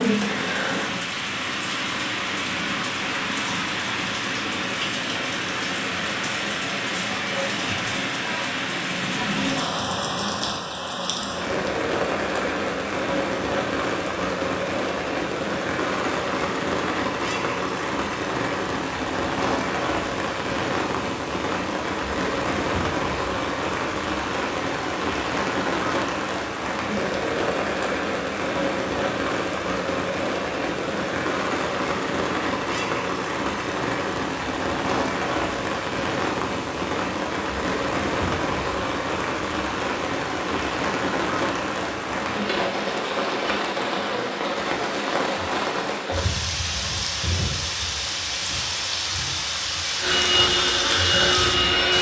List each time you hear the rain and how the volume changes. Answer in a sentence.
The rain can be heard from 0.0 to 51.9 s, at a steady volume.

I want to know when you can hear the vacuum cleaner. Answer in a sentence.
You can hear the vacuum cleaner from 50.0 to 51.9 s.